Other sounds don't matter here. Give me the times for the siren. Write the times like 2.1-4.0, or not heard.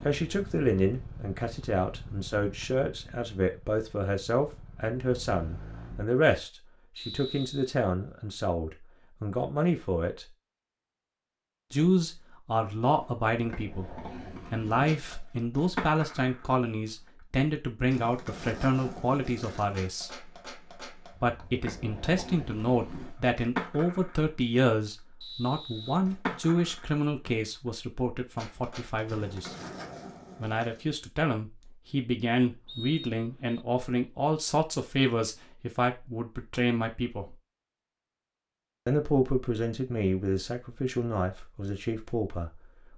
not heard.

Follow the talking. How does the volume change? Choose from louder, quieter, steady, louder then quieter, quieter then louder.
steady.